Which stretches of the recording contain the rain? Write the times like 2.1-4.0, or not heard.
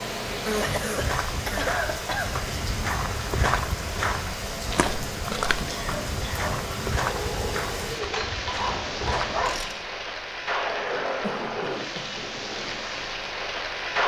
0.0-14.0.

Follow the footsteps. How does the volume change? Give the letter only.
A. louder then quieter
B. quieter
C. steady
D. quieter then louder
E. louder
A.